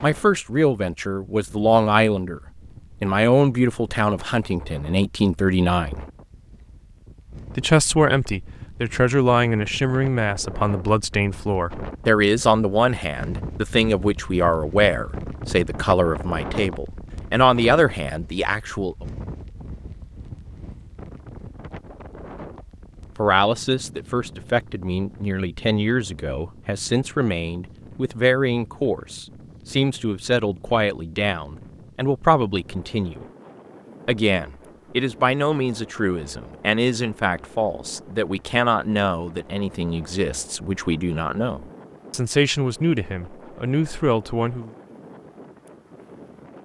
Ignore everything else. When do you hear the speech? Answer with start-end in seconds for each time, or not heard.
0.0-2.4, 3.0-6.0, 7.5-19.1, 23.1-33.2, 34.0-44.7.